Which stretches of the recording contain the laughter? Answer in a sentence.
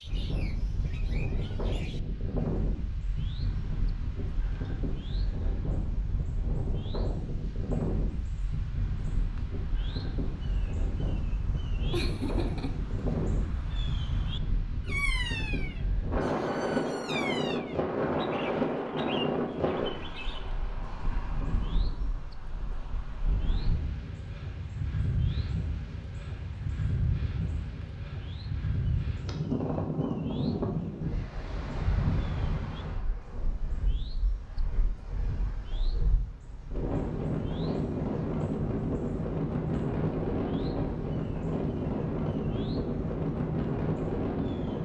You can hear the laughter from 11.9 to 12.8 s.